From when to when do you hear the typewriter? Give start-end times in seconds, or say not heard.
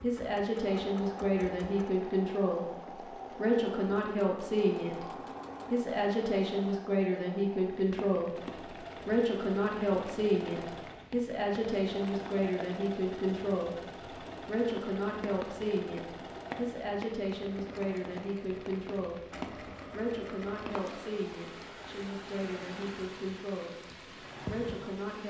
not heard.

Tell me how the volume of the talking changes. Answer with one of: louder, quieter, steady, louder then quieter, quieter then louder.
quieter.